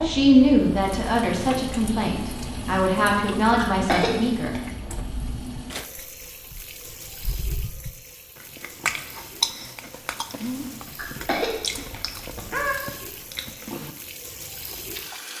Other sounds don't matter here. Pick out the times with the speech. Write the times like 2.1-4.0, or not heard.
0.0-4.5.